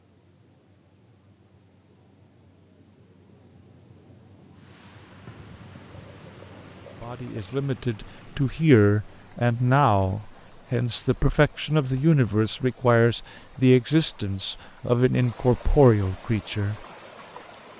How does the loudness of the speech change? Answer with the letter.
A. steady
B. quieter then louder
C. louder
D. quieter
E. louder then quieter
A.